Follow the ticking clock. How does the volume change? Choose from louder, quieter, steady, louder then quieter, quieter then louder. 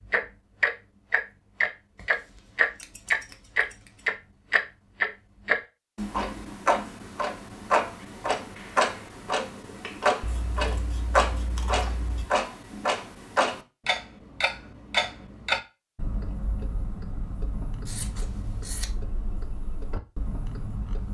quieter.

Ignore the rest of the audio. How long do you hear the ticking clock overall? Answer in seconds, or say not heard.
21 s.